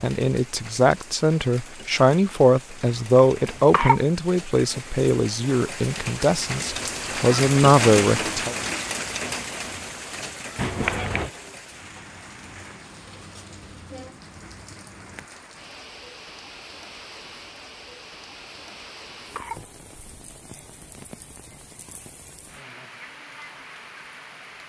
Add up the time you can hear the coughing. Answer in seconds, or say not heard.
3 s.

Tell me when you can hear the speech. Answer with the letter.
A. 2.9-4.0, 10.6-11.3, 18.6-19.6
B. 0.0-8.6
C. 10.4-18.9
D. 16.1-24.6
B.